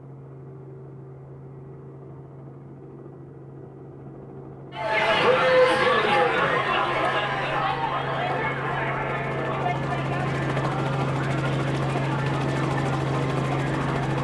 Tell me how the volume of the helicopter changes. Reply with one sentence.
The loudness of the helicopter goes up.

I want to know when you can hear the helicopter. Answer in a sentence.
The helicopter can be heard from 0.0 to 14.1 s.